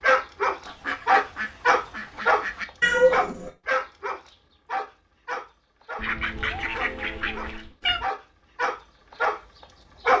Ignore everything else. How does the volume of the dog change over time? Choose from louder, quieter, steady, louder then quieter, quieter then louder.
quieter then louder.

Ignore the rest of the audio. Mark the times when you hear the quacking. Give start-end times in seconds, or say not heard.
0.7-2.6, 6.0-7.8.